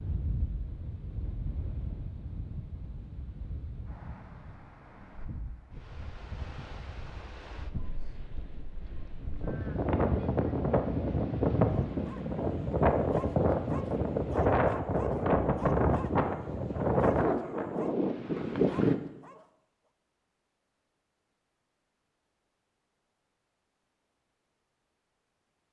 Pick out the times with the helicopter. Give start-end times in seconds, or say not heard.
not heard.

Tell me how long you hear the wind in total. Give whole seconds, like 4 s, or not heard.
19 s.